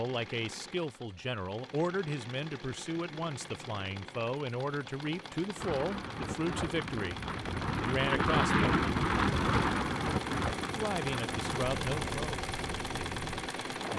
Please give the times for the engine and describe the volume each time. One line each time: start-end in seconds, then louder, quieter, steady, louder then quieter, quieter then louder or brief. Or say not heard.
0.0-13.9 louder.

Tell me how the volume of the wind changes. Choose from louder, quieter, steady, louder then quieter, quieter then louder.
louder then quieter.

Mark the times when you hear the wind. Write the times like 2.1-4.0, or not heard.
5.5-13.9.